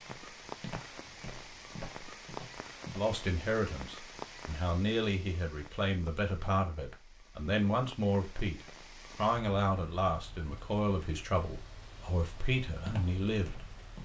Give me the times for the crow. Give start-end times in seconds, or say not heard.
not heard.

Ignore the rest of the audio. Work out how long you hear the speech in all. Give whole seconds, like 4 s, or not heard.
11 s.